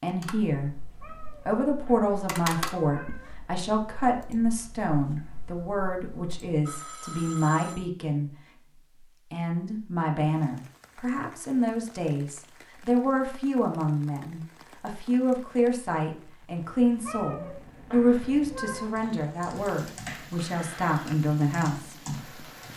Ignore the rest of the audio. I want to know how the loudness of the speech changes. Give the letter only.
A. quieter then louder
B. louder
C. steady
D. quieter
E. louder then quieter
C.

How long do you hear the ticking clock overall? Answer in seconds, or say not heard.
not heard.